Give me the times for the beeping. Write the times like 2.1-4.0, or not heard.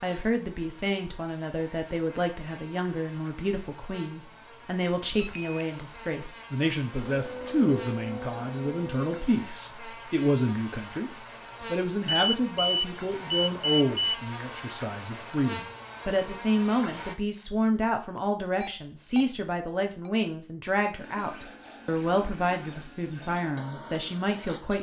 5.2-5.7, 12.1-14.2, 18.1-19.2.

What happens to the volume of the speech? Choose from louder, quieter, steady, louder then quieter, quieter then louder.
steady.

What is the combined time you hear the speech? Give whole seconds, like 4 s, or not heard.
25 s.